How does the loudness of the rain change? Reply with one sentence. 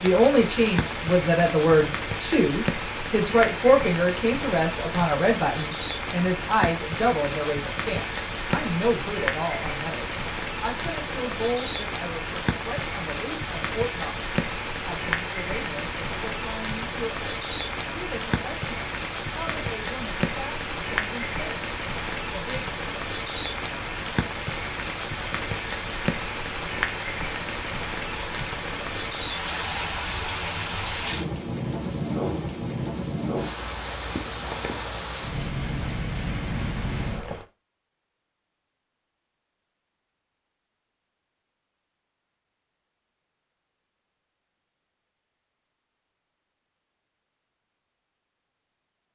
The loudness of the rain stays about the same.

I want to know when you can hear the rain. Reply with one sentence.
The rain can be heard from 0.0 to 37.5 s.